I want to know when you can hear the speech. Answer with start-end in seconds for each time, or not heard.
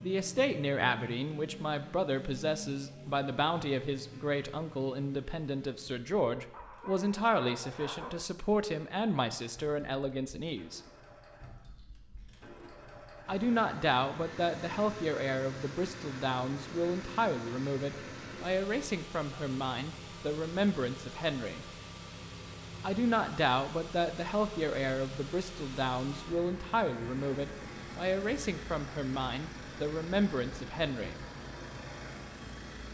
0.0-10.8, 13.2-21.6, 22.8-31.2.